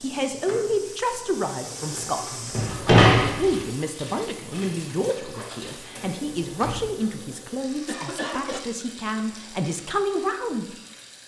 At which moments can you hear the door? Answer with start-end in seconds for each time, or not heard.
2.5-3.6, 6.4-6.9.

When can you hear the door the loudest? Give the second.
3 s.